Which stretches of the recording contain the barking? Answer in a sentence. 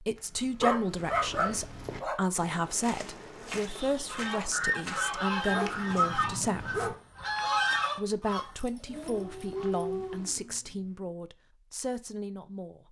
The barking can be heard from 0.6 to 2.1 s, from 5.5 to 7.0 s and from 8.8 to 11.1 s.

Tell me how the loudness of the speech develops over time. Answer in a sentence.
The loudness of the speech goes down.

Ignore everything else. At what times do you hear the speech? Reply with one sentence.
The speech can be heard from 0.0 to 7.0 s and from 8.0 to 12.8 s.